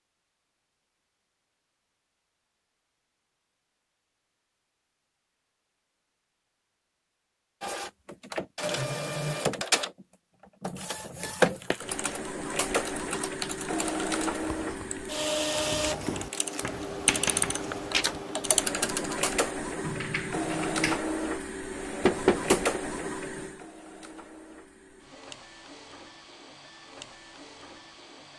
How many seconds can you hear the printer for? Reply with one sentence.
The printer can be heard for 21 seconds in total.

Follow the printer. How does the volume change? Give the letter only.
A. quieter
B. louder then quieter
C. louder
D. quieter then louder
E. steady
A.